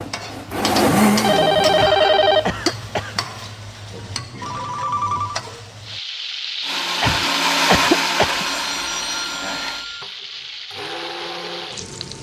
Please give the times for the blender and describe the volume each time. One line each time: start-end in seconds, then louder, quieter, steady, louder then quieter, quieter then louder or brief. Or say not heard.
0.0-1.9 brief
6.6-12.1 quieter then louder.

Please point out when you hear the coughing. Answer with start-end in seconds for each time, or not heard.
1.8-3.2, 7.0-8.4.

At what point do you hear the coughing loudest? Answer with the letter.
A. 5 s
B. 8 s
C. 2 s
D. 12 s
B.